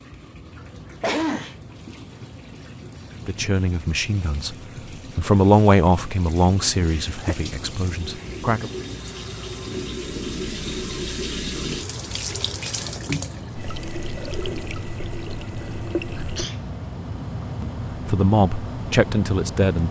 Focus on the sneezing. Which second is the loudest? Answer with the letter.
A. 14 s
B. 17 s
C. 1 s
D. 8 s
C.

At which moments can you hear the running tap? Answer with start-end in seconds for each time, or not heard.
0.0-16.4.